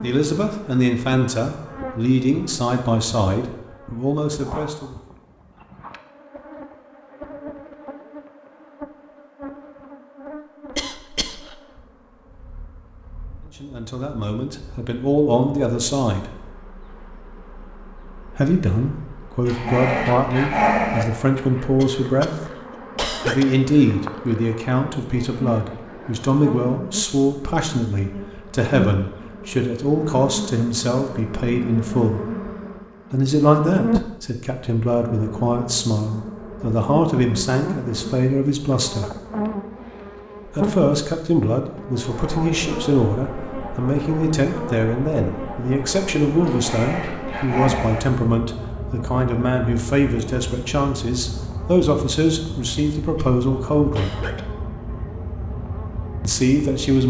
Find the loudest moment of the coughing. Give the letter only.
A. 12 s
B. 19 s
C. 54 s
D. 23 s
D.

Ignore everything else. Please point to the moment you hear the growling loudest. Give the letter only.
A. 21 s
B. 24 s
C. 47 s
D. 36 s
A.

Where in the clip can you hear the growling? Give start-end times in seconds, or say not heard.
19.4-21.1, 46.4-48.0.